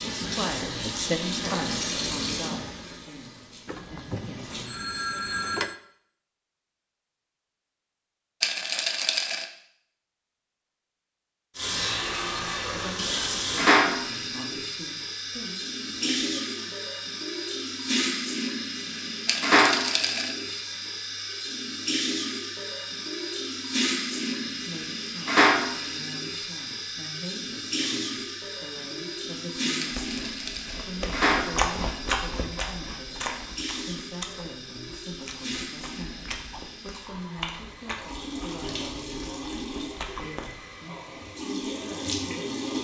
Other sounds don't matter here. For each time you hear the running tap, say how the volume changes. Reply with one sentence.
The running tap can be heard from 0.0 to 4.7 s, getting quieter; and from 11.6 to 42.7 s, getting quieter.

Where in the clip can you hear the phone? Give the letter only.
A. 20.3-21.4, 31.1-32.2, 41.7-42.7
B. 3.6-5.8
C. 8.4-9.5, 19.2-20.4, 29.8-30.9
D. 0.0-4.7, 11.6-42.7
B.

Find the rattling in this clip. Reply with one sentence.
The rattling can be heard from 8.4 to 9.5 s, from 19.2 to 20.4 s and from 29.8 to 30.9 s.